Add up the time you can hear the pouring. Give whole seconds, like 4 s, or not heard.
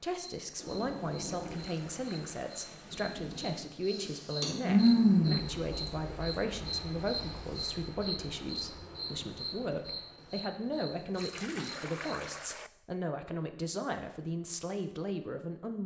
3 s.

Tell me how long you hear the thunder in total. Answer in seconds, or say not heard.
3 s.